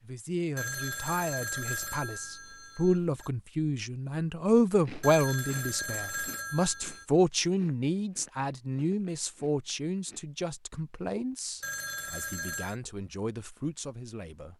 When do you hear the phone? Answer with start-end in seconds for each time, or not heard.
0.6-3.3, 5.0-7.0, 11.6-12.8.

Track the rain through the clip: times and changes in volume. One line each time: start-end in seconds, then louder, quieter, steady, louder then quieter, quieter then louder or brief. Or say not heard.
not heard.